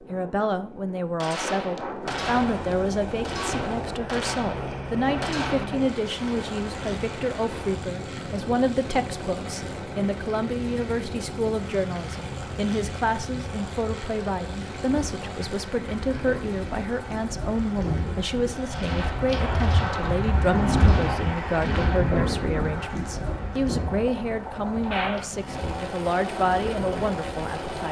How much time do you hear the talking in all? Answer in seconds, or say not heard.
28 s.